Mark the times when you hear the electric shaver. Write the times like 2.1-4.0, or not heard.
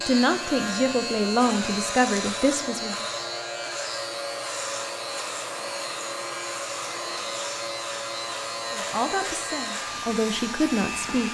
0.0-11.2.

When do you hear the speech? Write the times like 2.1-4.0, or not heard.
0.1-3.0, 8.7-11.2.